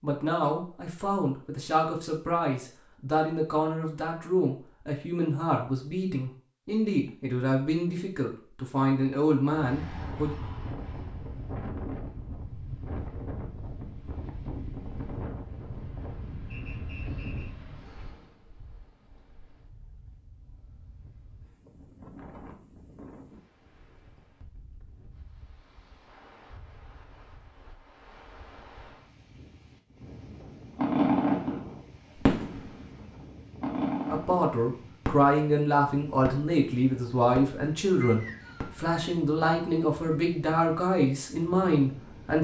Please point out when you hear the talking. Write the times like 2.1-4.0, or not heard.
0.0-10.3, 34.0-42.3.